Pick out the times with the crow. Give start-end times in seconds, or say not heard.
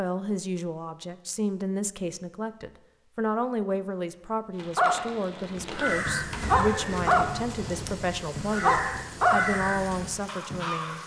5.7-11.0.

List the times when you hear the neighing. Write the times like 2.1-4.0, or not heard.
6.3-7.8.